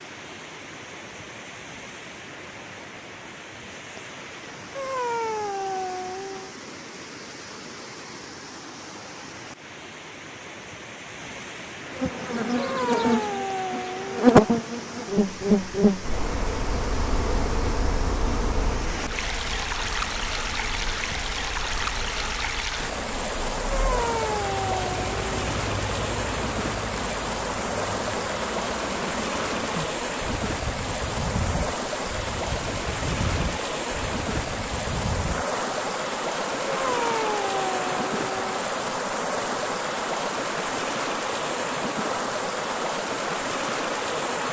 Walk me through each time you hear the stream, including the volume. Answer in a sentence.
You can hear the stream from 0.0 to 44.4 s, getting louder.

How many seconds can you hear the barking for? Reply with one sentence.
The barking can be heard for 7 seconds in total.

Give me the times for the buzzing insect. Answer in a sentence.
You can hear the buzzing insect from 11.9 to 44.4 s.